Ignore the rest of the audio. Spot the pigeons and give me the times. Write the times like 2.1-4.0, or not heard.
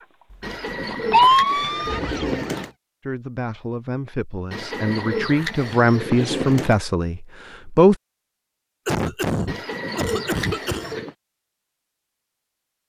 0.4-2.7, 4.5-6.8, 9.4-11.2.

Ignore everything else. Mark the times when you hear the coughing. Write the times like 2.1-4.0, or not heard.
0.3-1.3, 8.8-10.9.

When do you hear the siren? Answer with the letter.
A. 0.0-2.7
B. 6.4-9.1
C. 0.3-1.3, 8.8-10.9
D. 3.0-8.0
A.